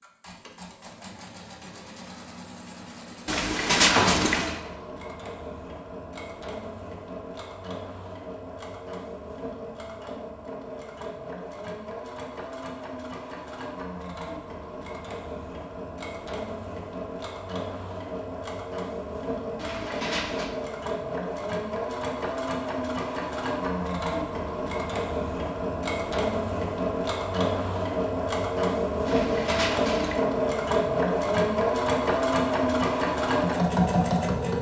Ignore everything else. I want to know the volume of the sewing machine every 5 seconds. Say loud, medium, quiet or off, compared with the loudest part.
quiet, quiet, quiet, medium, medium, loud, loud.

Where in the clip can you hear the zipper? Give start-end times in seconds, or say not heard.
3.2-4.6, 19.6-20.5, 29.1-30.2.